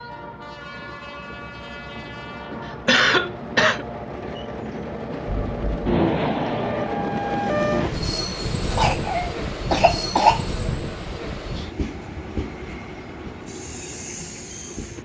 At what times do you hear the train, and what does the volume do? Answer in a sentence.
The train can be heard from 0.0 to 15.0 s, getting louder then quieter.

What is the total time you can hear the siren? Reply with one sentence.
You can hear the siren for 3 seconds altogether.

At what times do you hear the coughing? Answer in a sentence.
You can hear the coughing from 2.6 to 3.9 s and from 8.7 to 10.4 s.